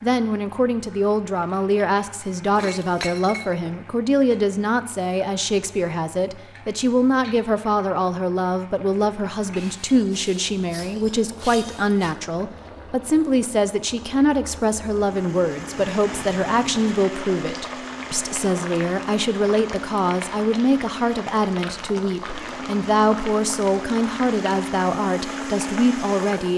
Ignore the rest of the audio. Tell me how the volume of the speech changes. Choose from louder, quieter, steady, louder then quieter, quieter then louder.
steady.